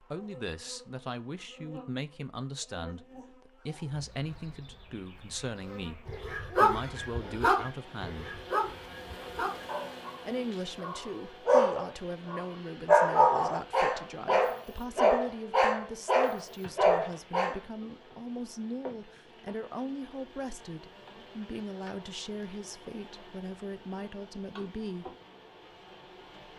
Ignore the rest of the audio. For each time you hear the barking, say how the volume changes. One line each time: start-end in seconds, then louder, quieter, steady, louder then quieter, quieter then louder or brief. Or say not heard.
6.0-17.6 quieter then louder.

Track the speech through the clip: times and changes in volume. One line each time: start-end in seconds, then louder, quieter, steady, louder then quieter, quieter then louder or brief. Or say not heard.
0.0-8.4 steady
10.2-25.1 steady.